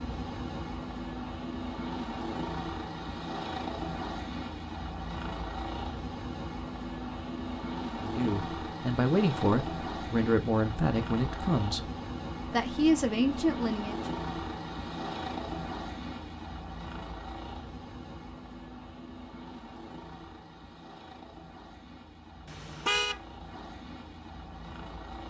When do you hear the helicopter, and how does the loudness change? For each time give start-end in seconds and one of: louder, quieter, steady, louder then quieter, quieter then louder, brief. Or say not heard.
0.0-25.2 quieter.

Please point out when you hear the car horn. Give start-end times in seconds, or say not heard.
22.4-23.2.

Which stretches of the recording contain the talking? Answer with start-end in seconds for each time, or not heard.
8.0-11.8, 12.5-14.0.